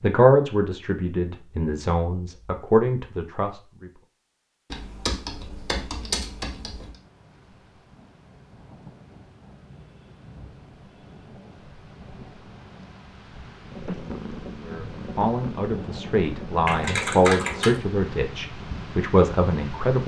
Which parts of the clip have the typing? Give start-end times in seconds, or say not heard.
4.7-7.0, 16.6-17.8.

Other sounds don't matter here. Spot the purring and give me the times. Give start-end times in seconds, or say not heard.
13.7-16.6.